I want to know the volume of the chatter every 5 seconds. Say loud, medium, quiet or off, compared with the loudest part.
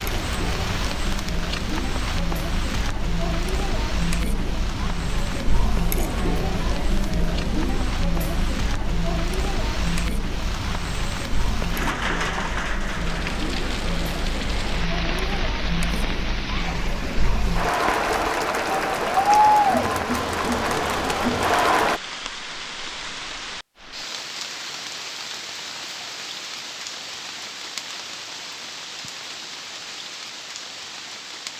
medium, medium, medium, loud, loud, off, off.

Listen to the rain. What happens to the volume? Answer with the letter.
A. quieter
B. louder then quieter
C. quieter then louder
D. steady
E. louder
D.